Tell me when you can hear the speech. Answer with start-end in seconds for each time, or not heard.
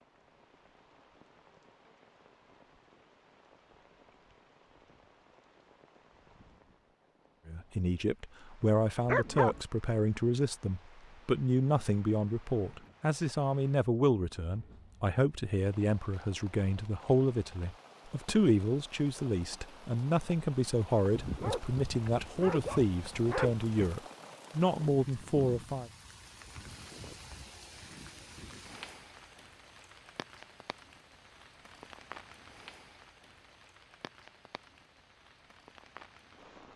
7.5-25.9.